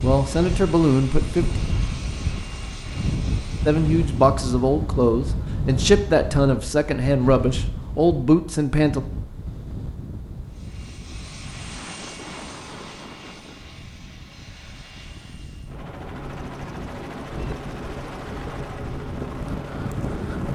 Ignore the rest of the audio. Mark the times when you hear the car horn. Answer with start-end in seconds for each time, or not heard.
not heard.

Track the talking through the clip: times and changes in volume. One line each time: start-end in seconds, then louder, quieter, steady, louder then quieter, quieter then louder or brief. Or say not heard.
0.0-1.6 brief
3.6-9.0 steady.